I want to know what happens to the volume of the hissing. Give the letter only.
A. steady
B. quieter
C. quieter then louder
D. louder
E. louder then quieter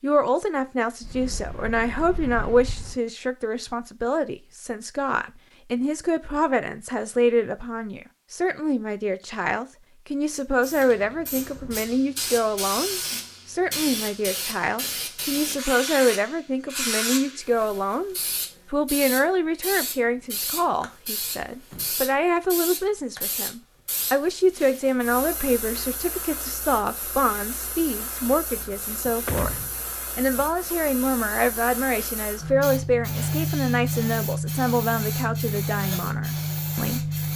C.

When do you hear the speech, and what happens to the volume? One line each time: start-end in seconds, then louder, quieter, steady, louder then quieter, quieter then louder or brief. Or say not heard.
0.0-37.3 steady.